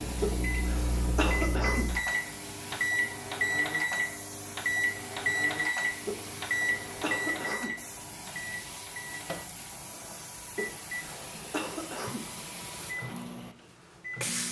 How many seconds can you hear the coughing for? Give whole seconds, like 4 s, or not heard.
5 s.